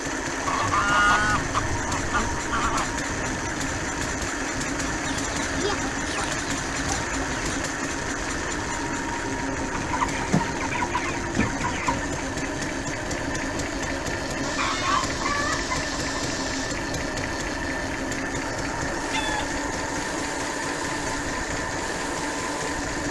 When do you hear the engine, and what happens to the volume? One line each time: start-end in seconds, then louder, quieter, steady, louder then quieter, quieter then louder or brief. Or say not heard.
0.0-23.0 steady.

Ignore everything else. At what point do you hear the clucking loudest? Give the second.
1 s.